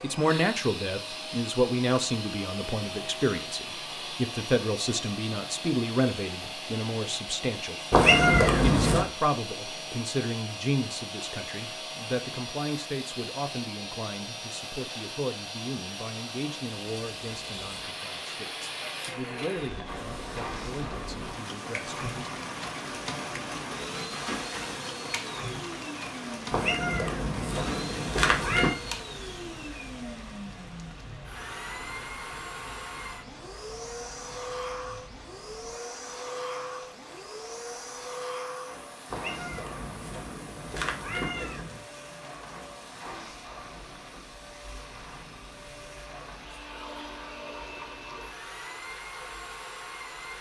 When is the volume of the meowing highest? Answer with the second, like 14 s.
8 s.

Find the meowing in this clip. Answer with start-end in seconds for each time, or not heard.
7.9-9.1, 26.5-28.8, 39.1-41.8.